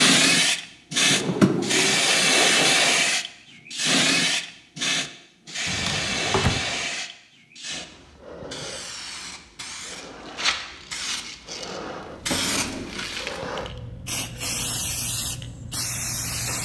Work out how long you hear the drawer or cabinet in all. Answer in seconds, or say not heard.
3 s.